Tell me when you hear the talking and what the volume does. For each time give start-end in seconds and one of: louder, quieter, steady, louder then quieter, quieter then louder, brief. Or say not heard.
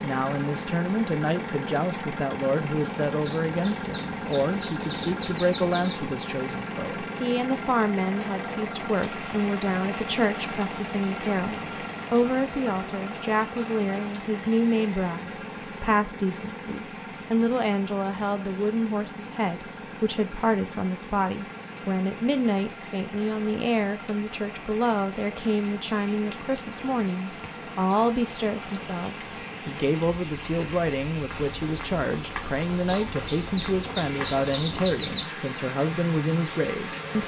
0.0-37.2 steady.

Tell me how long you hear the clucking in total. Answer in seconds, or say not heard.
5 s.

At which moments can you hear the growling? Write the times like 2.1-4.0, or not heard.
not heard.